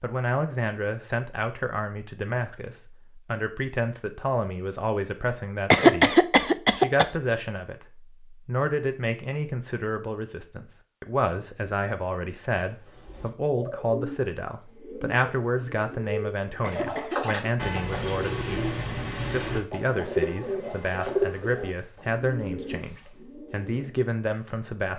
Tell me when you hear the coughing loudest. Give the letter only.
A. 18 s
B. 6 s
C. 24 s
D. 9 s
B.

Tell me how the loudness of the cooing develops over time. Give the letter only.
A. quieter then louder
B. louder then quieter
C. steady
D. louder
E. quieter
B.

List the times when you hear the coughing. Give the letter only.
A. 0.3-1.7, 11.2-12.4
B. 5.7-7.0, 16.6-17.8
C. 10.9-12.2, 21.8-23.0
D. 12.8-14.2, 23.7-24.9
B.